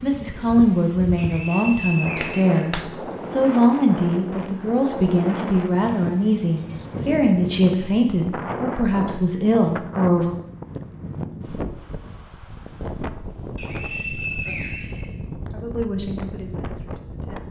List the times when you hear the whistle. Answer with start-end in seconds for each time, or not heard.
1.1-3.1, 13.6-15.6.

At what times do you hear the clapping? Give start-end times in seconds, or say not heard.
2.2-2.9.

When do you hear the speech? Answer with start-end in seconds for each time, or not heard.
0.0-10.3, 14.9-17.4.